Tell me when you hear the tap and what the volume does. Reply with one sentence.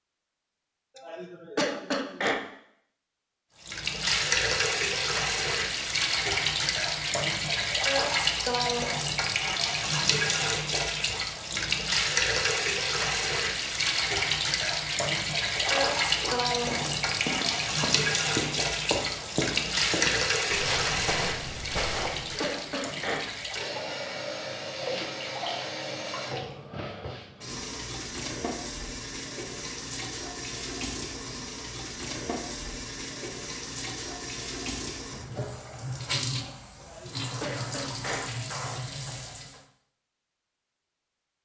You can hear the tap from 3.6 to 39.6 s, getting quieter.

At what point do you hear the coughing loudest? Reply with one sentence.
The volume of the coughing peaks at 2 seconds.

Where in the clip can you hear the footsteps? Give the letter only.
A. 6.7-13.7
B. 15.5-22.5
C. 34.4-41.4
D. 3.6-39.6
B.